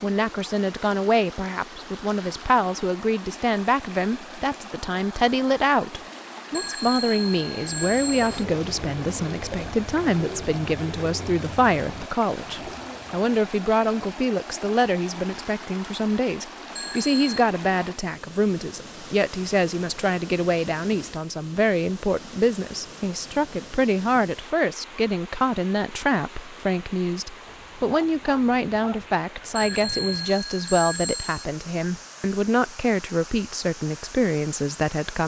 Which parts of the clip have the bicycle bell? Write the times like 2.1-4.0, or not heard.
6.5-8.4, 16.8-17.4, 29.6-31.4.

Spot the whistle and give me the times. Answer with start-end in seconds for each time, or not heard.
not heard.